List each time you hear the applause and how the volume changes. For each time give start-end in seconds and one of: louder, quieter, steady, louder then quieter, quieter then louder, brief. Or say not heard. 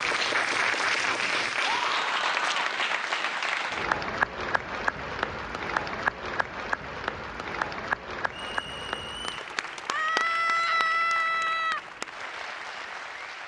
0.0-13.4 quieter.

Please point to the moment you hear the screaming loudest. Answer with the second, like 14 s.
11 s.